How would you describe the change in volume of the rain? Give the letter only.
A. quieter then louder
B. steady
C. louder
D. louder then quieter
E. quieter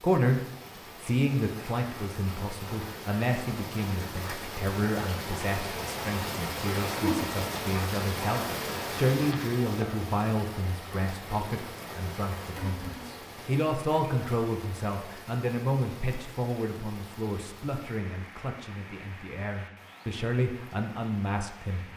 D.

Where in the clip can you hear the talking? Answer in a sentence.
The talking can be heard from 0.0 to 21.9 s.